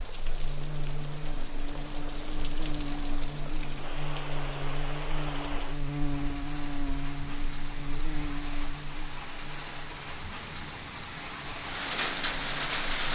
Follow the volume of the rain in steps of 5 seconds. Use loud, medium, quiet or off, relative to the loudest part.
medium, medium, loud.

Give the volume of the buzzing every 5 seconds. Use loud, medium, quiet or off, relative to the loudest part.
loud, loud, medium.